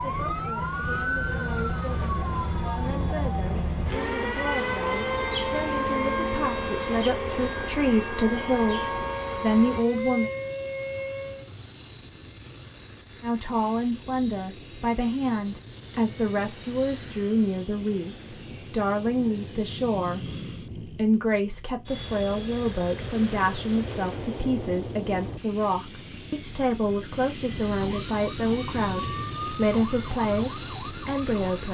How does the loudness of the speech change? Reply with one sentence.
The loudness of the speech goes up.